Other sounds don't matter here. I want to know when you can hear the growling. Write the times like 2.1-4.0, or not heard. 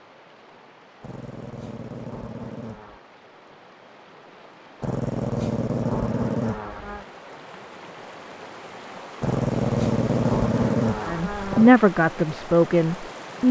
1.0-3.0, 4.8-7.0, 9.2-11.7.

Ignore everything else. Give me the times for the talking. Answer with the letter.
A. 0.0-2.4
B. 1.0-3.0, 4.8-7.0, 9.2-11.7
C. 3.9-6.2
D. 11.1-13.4
D.